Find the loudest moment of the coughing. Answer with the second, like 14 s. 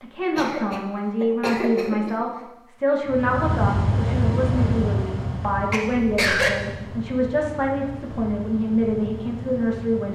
6 s.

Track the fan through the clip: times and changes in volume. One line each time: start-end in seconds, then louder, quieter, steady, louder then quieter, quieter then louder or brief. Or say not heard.
3.0-10.0 quieter.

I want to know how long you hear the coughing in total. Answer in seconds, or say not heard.
3 s.